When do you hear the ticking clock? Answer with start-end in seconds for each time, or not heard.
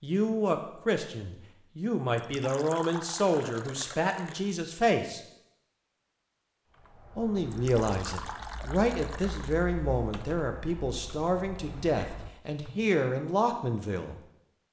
not heard.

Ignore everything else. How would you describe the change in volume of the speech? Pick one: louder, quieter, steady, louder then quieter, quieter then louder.
steady.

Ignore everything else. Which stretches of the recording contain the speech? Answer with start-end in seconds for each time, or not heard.
0.0-5.2, 7.2-14.2.